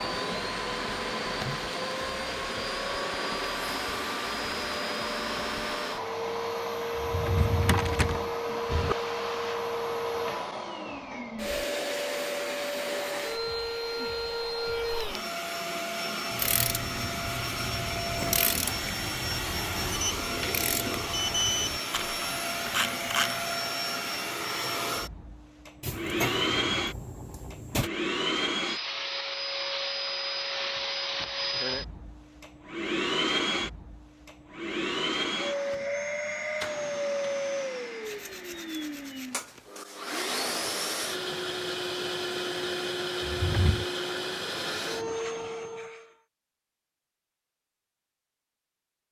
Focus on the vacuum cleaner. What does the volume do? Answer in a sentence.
The loudness of the vacuum cleaner stays about the same.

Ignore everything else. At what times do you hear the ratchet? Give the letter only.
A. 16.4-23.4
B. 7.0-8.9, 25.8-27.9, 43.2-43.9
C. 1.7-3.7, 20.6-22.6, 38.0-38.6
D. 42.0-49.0
A.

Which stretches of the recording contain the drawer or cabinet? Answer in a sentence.
You can hear the drawer or cabinet from 7.0 to 8.9 s, from 25.8 to 27.9 s and from 43.2 to 43.9 s.